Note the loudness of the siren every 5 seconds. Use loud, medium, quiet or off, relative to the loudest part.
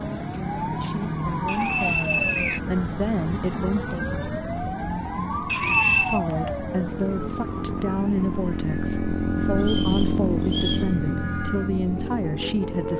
loud, loud, medium.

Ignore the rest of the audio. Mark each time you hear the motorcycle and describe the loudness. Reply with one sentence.
The motorcycle can be heard from 0.0 to 12.9 s, getting louder.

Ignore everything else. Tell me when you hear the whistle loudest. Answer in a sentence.
The volume of the whistle peaks at 6 seconds.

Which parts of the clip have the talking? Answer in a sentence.
The talking can be heard from 0.0 to 4.0 s and from 6.0 to 12.9 s.